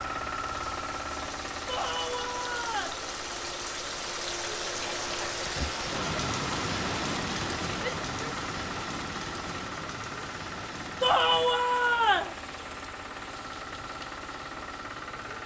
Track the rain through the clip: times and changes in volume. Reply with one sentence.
You can hear the rain from 0.0 to 15.4 s, getting louder then quieter.